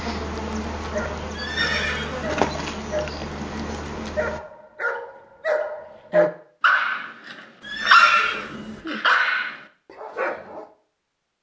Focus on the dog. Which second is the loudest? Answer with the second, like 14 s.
8 s.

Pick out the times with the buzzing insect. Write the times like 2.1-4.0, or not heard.
0.0-4.4.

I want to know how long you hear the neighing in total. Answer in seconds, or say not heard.
2 s.